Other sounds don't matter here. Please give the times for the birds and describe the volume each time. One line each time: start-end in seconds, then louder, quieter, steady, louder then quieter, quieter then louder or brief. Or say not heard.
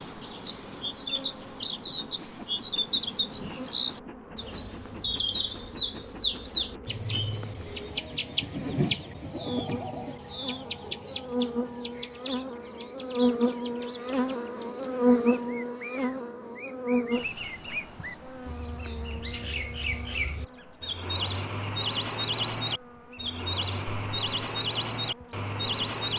0.0-26.1 quieter then louder.